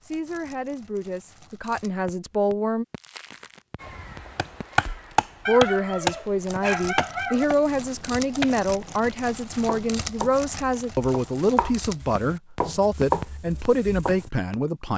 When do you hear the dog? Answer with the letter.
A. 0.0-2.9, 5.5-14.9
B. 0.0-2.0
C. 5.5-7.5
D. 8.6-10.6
C.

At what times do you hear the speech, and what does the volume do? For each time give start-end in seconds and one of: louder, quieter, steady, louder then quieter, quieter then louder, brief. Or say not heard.
0.0-2.9 brief
5.5-14.9 steady.